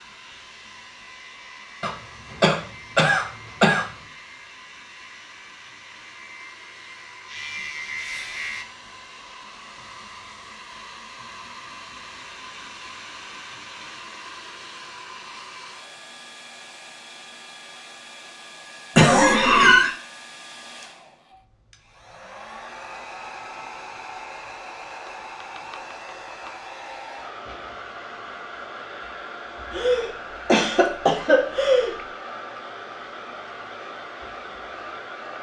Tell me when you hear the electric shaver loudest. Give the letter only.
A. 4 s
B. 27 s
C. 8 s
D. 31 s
C.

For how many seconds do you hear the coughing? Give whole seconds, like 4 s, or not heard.
5 s.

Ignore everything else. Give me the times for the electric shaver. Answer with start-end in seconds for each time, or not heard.
0.0-8.7.